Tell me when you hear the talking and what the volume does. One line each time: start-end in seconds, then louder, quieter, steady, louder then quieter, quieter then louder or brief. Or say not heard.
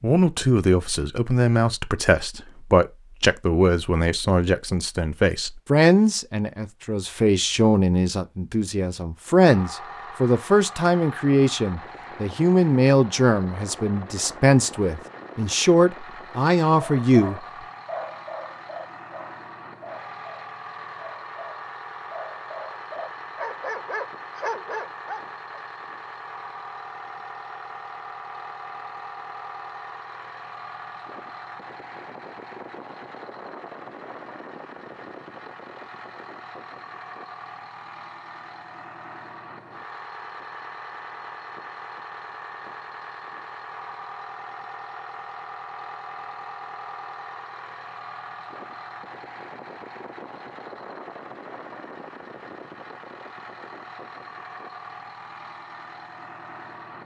0.0-17.4 steady.